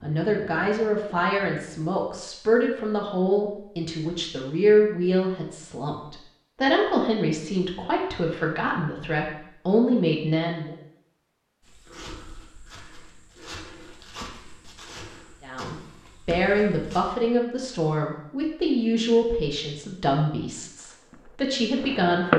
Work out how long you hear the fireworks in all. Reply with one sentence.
The fireworks can be heard for 3 seconds in total.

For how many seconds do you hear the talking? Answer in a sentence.
You can hear the talking for 18 seconds altogether.